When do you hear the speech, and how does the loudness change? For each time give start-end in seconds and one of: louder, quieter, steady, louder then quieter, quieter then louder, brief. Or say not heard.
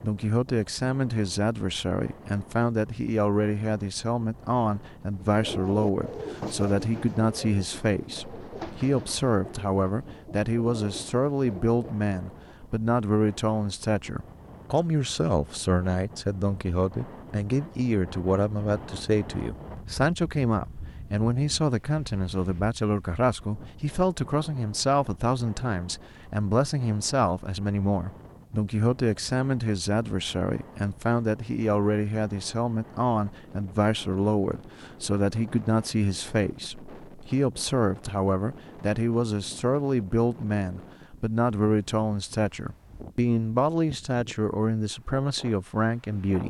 0.0-46.4 steady.